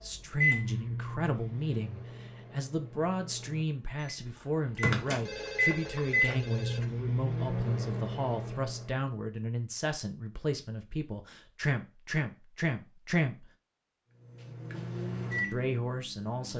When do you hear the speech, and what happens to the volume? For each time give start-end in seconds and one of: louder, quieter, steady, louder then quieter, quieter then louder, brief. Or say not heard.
0.0-13.5 steady
15.5-16.5 brief.